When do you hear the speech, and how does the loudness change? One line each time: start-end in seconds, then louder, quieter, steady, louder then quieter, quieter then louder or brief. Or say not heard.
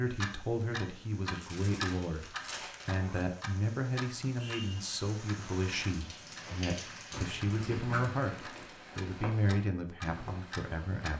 0.0-11.1 steady.